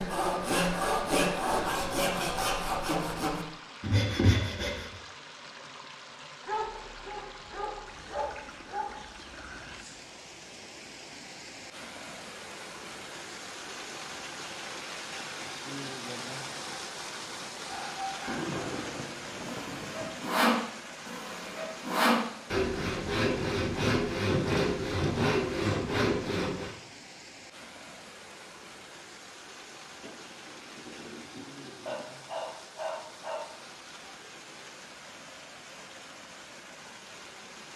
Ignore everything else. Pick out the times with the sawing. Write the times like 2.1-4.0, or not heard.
0.0-5.0, 19.6-26.7.